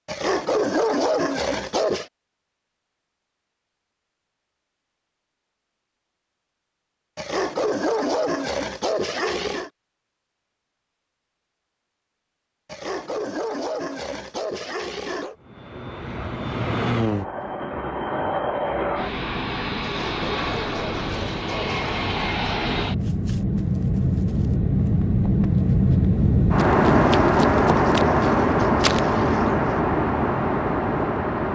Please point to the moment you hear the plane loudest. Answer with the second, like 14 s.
27 s.